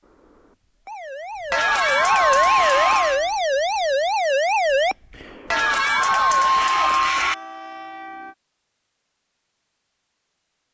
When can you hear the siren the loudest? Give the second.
4 s.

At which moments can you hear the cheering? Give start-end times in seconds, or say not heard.
1.5-3.2, 5.5-7.3.